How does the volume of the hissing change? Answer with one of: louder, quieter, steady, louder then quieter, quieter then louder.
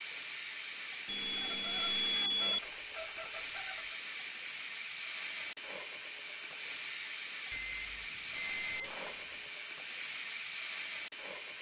steady.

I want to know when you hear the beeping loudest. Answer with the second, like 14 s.
2 s.